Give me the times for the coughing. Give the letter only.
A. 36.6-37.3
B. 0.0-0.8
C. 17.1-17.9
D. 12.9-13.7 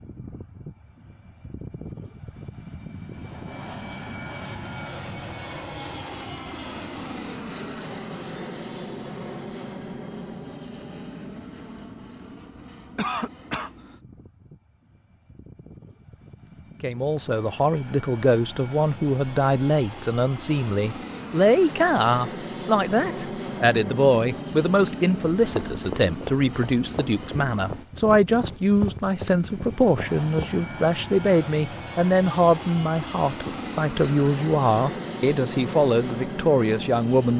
D.